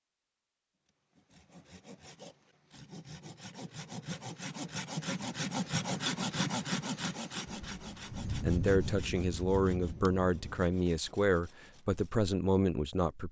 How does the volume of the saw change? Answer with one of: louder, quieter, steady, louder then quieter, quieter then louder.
louder then quieter.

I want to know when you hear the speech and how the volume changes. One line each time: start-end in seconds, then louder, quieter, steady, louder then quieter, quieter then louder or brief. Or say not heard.
8.4-13.2 steady.